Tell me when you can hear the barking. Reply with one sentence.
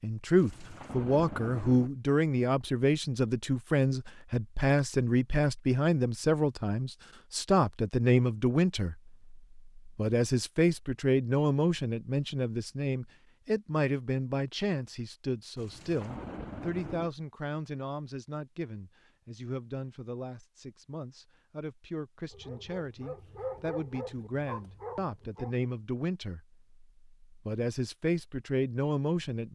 You can hear the barking from 22.3 to 25.6 s.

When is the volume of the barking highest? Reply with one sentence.
The loudest moment of the barking is at 24 seconds.